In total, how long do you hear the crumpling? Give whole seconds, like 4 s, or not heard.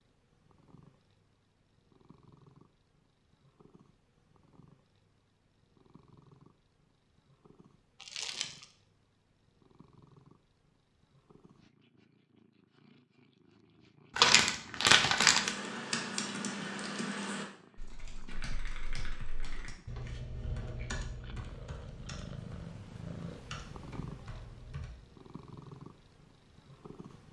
2 s.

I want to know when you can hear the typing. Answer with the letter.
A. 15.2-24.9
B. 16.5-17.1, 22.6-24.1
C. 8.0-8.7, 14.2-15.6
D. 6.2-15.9
A.